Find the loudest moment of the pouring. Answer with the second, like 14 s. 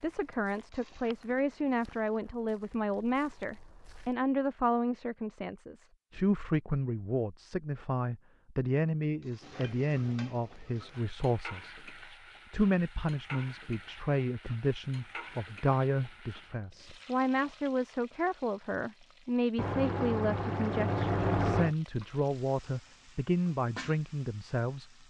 21 s.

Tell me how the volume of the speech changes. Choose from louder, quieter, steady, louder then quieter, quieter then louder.
steady.